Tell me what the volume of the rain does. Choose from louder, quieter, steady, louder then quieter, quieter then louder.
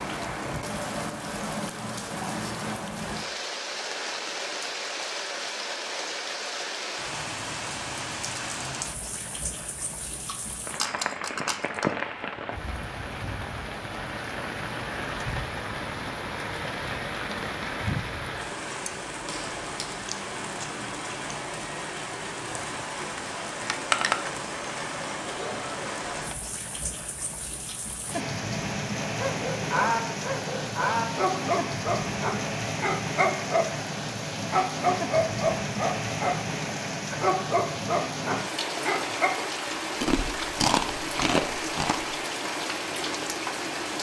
steady.